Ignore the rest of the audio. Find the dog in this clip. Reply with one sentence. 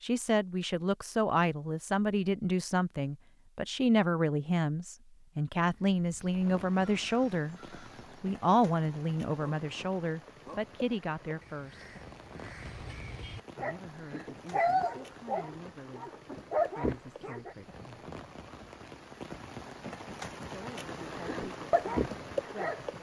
The dog can be heard from 13.6 to 17.6 s and from 21.2 to 22.8 s.